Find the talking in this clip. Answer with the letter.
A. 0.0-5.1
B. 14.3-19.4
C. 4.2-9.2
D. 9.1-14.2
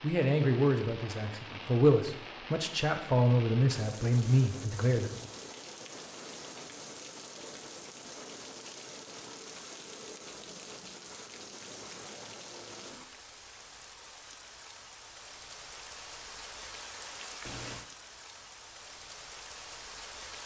A.